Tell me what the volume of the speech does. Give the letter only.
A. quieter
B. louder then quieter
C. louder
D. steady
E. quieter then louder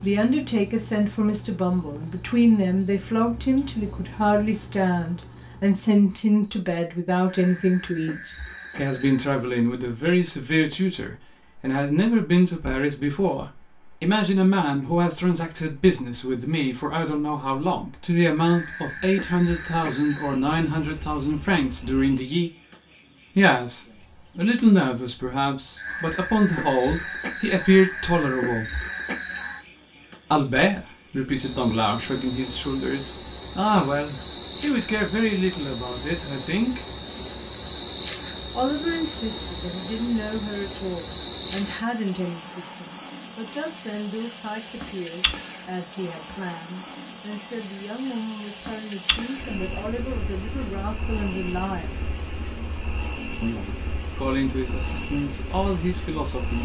A.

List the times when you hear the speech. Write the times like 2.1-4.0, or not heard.
0.0-22.5, 23.4-28.8, 30.3-36.9, 38.5-52.0, 53.4-56.6.